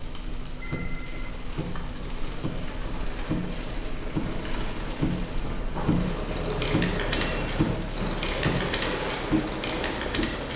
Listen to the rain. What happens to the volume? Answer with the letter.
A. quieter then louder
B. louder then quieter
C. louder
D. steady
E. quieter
C.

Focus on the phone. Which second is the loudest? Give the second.
7 s.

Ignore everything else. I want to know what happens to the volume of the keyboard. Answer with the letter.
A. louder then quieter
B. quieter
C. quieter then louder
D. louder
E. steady
D.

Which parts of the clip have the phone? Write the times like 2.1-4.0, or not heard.
0.6-1.4, 5.8-7.5.